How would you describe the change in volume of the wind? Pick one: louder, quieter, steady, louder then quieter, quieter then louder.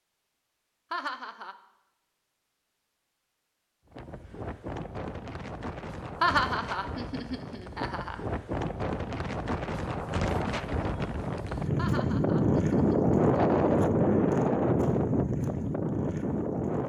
louder.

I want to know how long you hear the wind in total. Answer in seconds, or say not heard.
13 s.